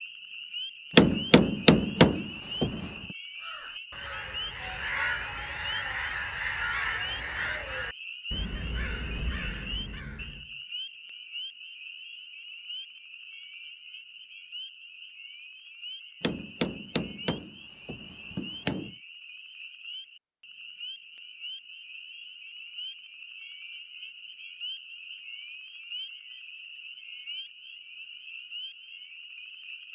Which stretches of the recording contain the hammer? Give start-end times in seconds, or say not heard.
0.9-2.9, 16.2-18.9.